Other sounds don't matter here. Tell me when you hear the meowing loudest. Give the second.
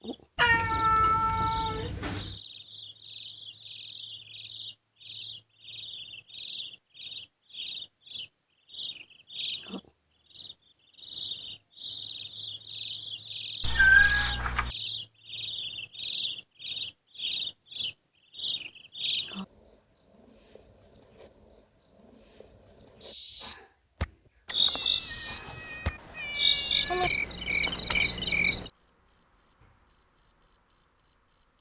14 s.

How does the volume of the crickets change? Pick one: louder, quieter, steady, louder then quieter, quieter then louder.
louder.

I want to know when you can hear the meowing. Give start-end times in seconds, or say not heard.
0.3-2.4, 13.6-14.8, 24.4-27.1.